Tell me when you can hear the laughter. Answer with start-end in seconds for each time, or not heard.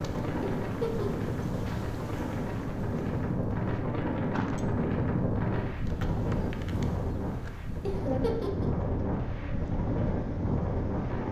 0.4-1.2, 7.8-8.8.